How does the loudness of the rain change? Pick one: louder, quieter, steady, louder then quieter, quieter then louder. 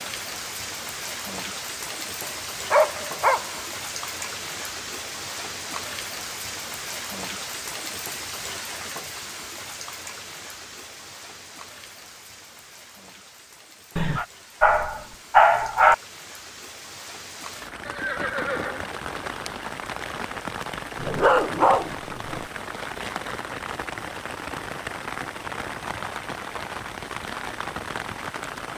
quieter then louder.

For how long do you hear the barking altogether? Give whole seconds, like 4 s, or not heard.
5 s.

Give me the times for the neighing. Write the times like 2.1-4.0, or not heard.
17.9-18.9.